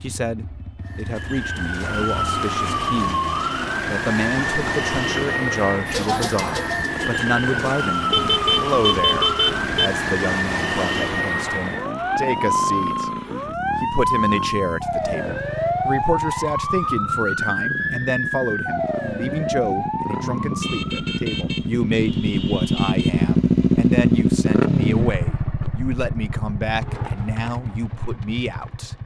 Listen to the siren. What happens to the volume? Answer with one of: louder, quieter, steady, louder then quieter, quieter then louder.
steady.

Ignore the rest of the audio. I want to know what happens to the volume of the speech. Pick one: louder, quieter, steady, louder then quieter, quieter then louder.
steady.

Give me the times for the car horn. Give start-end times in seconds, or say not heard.
8.1-9.9, 20.6-23.3.